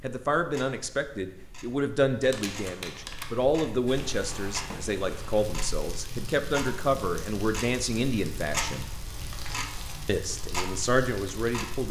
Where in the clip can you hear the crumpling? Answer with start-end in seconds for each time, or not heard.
2.2-3.3, 8.9-10.0.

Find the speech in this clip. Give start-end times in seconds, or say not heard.
0.0-8.9, 10.1-11.8.